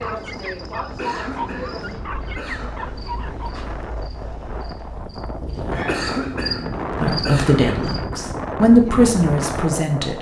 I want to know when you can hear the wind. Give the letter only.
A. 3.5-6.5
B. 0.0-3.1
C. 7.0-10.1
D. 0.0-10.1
D.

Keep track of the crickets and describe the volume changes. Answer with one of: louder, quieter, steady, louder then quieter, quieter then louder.
quieter then louder.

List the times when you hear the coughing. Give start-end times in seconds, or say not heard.
0.9-3.0, 5.8-7.8.